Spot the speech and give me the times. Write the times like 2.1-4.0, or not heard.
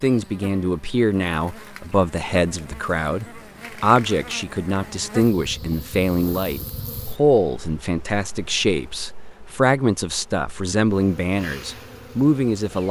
0.0-12.8.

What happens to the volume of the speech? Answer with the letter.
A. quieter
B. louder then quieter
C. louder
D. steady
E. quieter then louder
D.